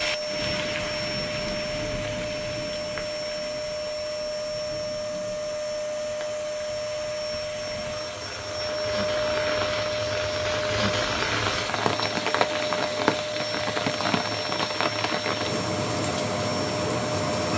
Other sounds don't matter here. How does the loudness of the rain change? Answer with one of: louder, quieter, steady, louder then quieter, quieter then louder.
quieter then louder.